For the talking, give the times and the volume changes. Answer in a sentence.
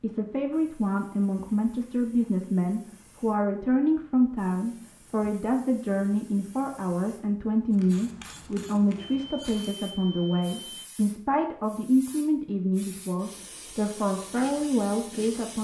You can hear the talking from 0.0 to 15.5 s, at a steady volume.